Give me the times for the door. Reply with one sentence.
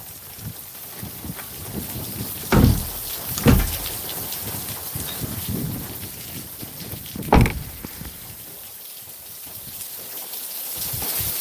The door can be heard from 2.5 to 3.9 s and from 7.2 to 8.1 s.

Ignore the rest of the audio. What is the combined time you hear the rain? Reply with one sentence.
You can hear the rain for 11 seconds altogether.